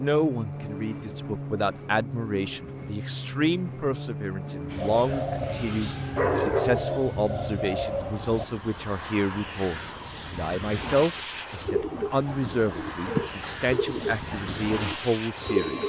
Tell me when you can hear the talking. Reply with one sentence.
The talking can be heard from 0.0 to 15.8 s.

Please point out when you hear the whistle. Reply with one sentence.
You can't hear the whistle here.